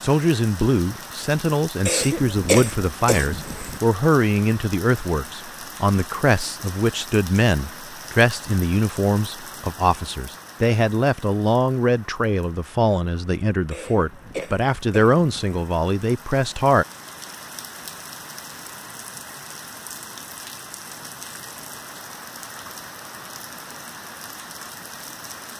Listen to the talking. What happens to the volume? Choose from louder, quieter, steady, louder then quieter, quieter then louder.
steady.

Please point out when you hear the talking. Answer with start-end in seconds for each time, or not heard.
0.0-16.9.